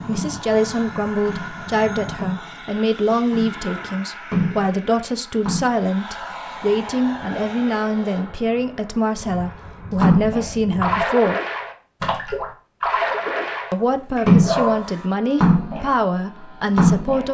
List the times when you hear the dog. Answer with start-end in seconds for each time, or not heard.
13.8-15.1.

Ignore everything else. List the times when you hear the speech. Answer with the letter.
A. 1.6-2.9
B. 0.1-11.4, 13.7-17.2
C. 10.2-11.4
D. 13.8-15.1
B.